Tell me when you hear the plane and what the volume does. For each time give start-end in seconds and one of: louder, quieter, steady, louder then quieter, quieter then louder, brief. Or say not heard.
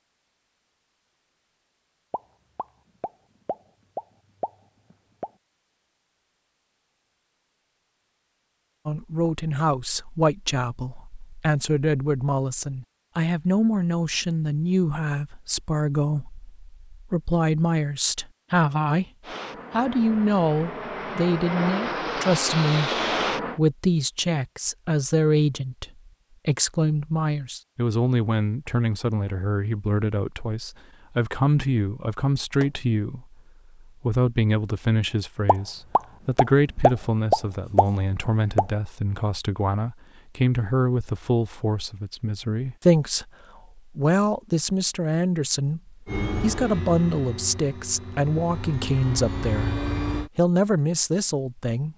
19.2-23.6 louder
46.0-50.3 quieter then louder.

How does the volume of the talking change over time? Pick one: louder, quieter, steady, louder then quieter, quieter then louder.
steady.